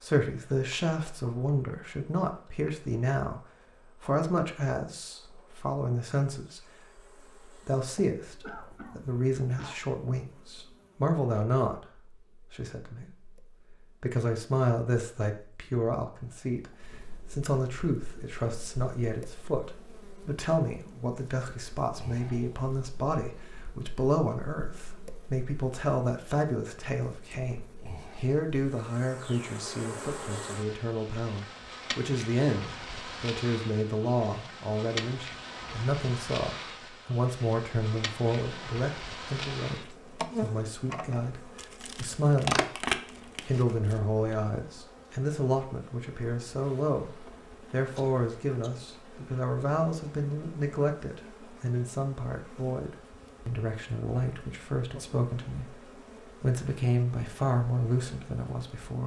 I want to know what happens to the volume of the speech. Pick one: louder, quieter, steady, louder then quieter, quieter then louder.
steady.